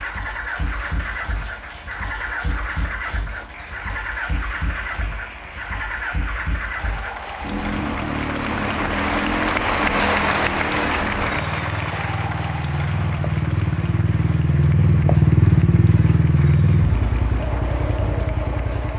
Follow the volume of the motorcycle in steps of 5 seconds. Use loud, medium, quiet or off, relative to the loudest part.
medium, medium, medium, loud.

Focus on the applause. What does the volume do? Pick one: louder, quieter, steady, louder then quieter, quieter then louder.
louder then quieter.